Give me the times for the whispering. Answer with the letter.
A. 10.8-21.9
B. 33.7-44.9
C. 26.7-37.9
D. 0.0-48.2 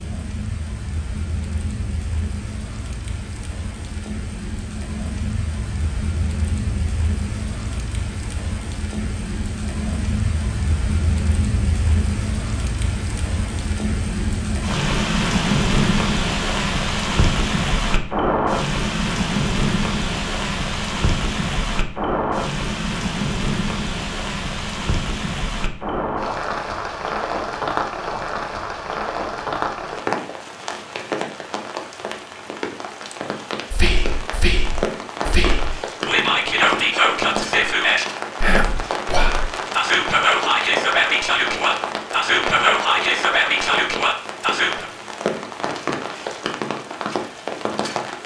B.